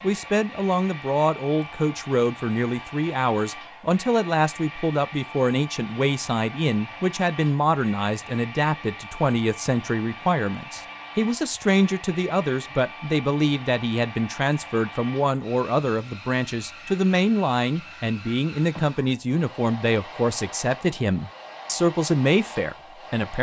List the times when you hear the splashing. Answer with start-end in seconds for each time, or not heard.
not heard.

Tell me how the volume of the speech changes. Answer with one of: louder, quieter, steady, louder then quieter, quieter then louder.
steady.